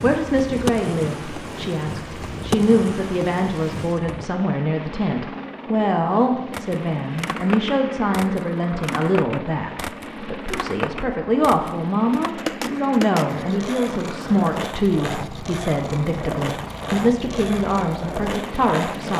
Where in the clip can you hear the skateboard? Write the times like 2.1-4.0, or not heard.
0.0-4.3, 6.5-19.1.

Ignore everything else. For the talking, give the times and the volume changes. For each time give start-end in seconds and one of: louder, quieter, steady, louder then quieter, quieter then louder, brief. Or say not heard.
0.0-19.1 steady.